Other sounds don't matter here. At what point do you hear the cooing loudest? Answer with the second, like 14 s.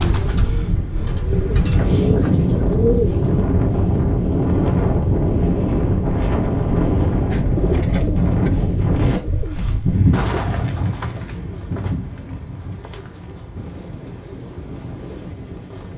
3 s.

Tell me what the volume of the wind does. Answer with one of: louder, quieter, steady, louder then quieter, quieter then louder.
quieter.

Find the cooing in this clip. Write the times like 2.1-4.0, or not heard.
0.0-3.5, 7.3-15.9.